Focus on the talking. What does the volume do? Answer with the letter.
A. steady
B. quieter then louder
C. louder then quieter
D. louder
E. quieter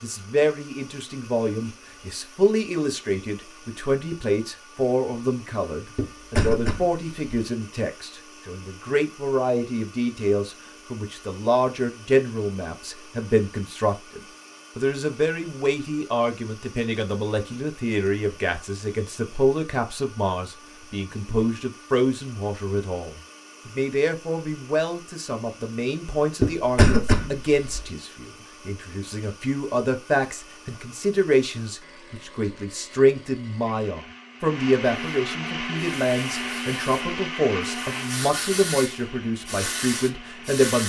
A.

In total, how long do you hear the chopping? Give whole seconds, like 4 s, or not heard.
not heard.